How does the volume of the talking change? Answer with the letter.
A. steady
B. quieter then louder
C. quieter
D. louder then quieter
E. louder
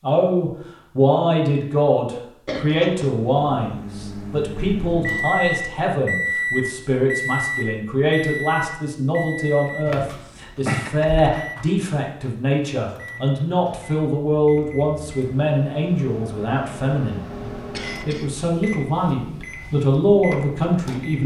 A.